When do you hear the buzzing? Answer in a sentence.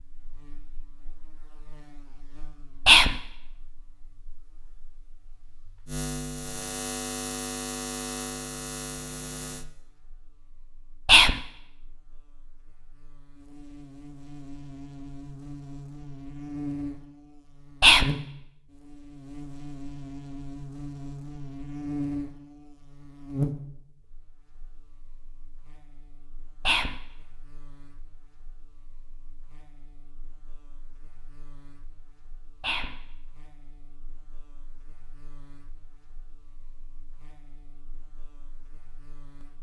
You can hear the buzzing from 0.0 to 39.5 s.